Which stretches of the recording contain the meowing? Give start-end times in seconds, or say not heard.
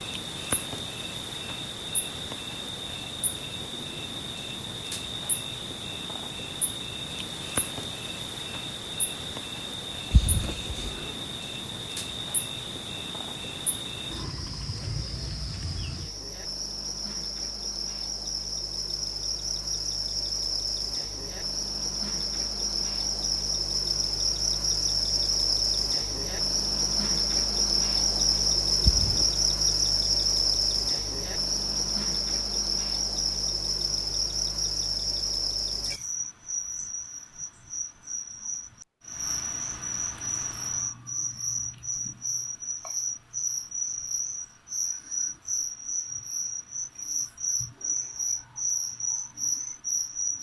10.1-11.1, 28.8-29.2.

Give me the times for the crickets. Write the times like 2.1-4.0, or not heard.
0.0-50.3.